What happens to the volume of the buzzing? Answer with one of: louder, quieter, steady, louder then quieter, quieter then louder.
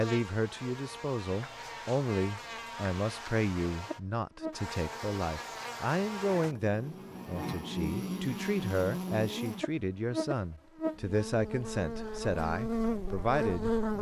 louder.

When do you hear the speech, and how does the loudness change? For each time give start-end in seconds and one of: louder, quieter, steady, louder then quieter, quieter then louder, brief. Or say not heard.
0.0-13.9 steady.